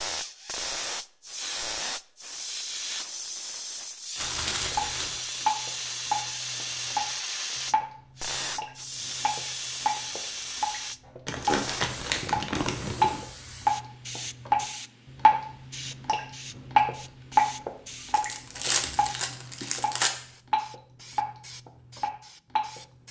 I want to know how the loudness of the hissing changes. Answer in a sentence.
The volume of the hissing goes down.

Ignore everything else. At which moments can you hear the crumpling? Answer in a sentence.
You can hear the crumpling from 4.2 to 5.2 s, from 11.2 to 13.2 s and from 18.1 to 20.1 s.